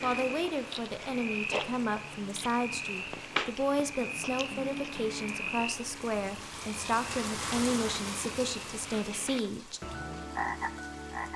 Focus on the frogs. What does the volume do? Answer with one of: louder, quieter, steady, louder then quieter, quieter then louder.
quieter then louder.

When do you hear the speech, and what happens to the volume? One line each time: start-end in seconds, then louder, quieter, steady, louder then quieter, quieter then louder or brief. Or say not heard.
0.0-9.8 steady.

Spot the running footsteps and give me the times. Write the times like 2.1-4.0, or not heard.
not heard.